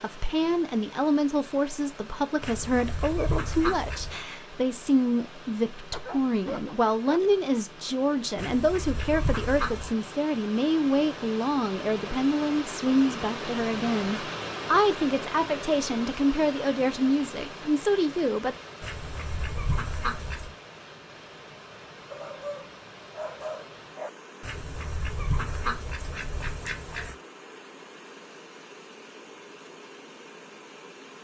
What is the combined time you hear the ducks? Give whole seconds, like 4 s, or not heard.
8 s.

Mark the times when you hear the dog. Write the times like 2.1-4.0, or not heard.
5.9-7.3, 22.1-24.1.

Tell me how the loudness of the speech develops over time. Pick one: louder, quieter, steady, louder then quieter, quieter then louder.
steady.